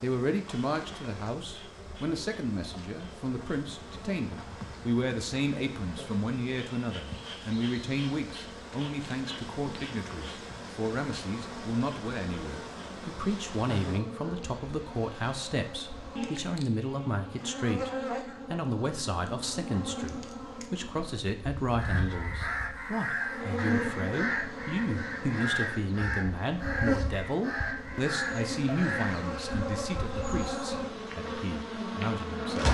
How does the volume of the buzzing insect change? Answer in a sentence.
The volume of the buzzing insect goes up.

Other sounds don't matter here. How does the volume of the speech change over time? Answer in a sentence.
The loudness of the speech stays about the same.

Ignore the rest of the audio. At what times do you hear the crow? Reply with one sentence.
The crow can be heard from 21.8 to 29.4 s.